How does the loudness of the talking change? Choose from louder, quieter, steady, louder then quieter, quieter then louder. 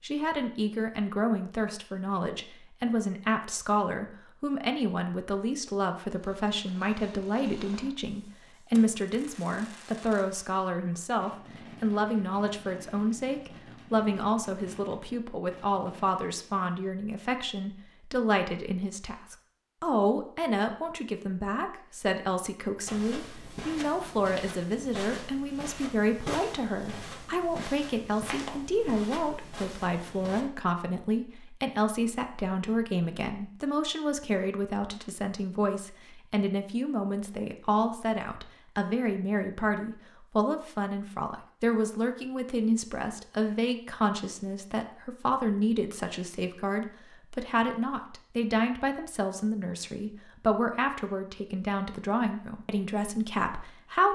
steady.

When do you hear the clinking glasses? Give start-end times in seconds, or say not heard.
not heard.